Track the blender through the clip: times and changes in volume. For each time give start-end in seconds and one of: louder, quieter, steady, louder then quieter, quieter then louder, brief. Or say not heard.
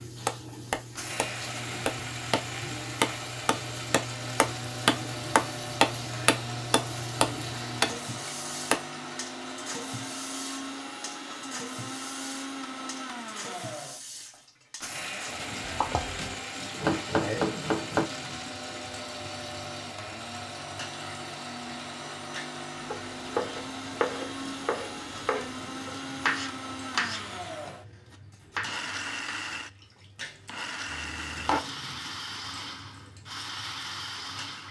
0.0-34.6 steady.